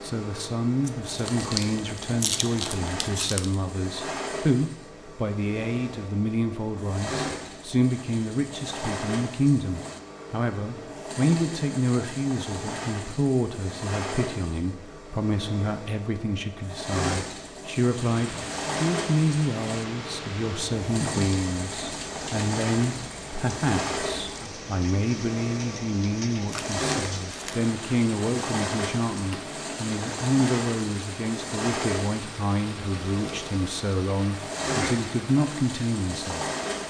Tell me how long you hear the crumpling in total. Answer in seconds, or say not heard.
4 s.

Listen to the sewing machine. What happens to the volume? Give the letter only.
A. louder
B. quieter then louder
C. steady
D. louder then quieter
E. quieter
C.